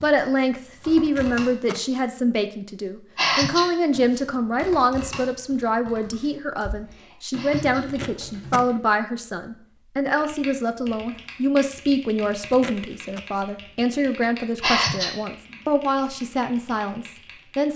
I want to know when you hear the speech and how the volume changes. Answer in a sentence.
You can hear the speech from 0.0 to 17.7 s, at a steady volume.